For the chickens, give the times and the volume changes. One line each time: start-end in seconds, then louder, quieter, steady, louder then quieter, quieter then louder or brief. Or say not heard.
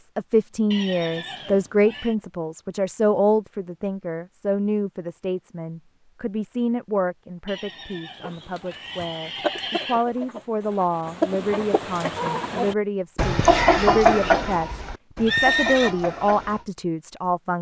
8.2-16.6 louder then quieter.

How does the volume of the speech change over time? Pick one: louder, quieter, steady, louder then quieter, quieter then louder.
quieter then louder.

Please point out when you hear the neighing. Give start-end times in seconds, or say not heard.
0.7-2.1, 7.5-10.1, 15.2-15.9.